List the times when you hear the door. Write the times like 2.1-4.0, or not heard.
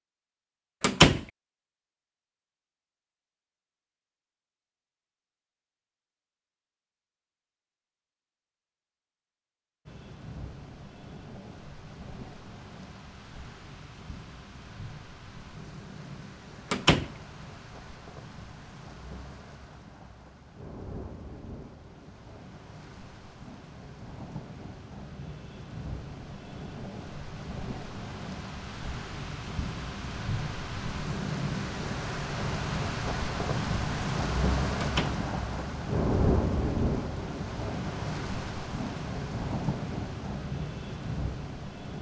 0.8-1.2, 16.7-17.1, 34.8-35.2.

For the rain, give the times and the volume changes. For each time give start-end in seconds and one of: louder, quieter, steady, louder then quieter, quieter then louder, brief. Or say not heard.
9.8-41.9 louder.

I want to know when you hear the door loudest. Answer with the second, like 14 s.
1 s.